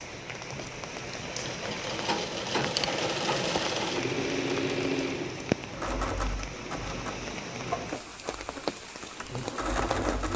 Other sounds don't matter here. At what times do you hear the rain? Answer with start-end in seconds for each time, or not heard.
0.0-10.3.